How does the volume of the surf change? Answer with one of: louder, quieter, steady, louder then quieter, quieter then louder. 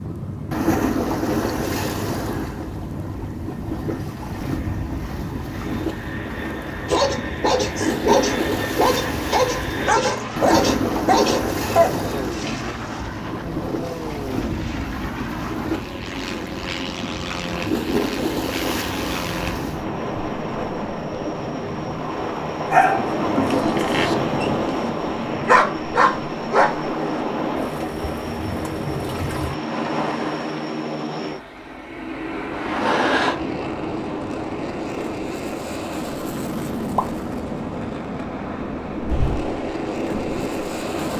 steady.